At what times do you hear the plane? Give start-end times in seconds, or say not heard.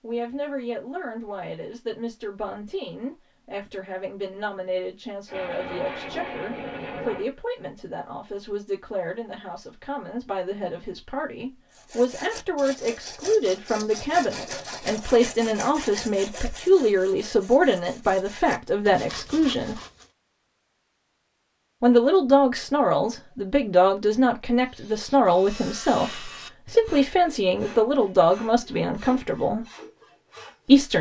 5.2-7.2.